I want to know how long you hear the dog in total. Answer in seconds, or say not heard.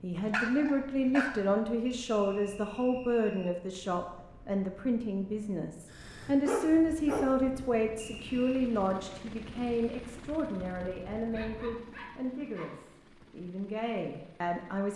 4 s.